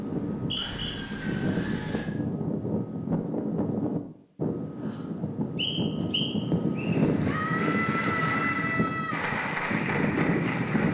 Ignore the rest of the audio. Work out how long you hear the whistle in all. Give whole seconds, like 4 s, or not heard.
2 s.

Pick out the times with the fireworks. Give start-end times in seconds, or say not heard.
not heard.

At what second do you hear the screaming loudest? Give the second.
8 s.